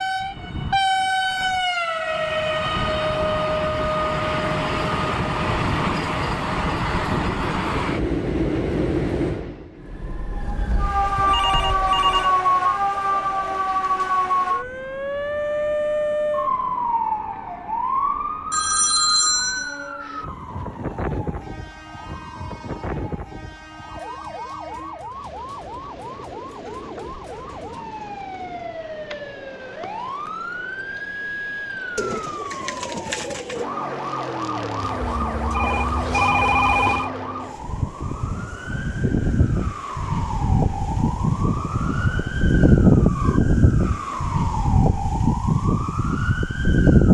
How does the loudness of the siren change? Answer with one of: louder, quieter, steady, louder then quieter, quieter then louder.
quieter then louder.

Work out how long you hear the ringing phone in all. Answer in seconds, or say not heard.
6 s.